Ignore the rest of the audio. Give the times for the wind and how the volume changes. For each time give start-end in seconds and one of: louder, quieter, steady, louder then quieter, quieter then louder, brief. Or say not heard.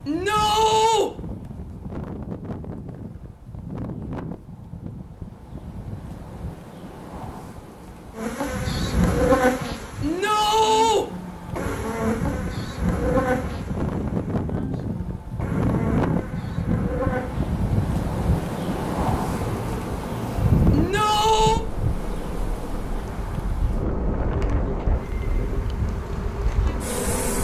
0.0-27.3 louder then quieter.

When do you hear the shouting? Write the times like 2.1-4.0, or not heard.
0.1-1.1, 10.0-11.1, 20.7-21.6.